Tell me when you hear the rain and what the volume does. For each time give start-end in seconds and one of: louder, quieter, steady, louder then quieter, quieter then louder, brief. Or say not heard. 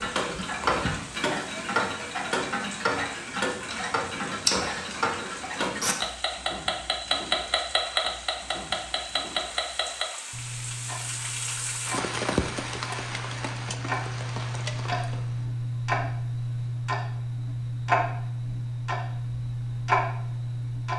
0.0-15.4 louder.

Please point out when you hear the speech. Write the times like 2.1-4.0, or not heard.
not heard.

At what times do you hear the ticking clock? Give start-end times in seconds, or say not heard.
0.0-20.9.